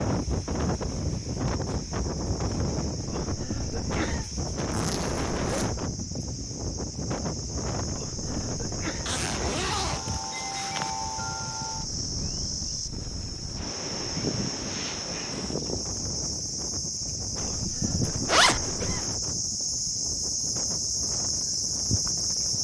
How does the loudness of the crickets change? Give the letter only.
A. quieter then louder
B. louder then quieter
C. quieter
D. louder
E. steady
D.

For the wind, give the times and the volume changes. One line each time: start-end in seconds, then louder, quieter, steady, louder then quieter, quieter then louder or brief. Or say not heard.
0.0-22.5 quieter.